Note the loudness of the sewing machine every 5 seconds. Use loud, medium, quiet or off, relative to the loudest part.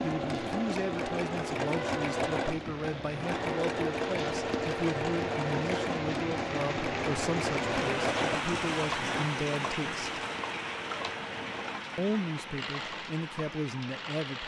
loud, loud, medium.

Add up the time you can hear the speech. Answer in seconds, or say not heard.
13 s.